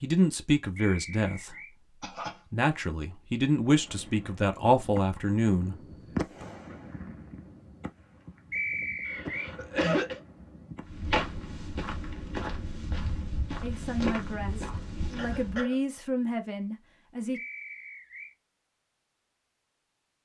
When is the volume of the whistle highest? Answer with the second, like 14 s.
9 s.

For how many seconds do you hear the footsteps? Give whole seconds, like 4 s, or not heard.
5 s.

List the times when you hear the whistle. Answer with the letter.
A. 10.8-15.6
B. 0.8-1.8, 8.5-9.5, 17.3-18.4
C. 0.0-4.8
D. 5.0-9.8
B.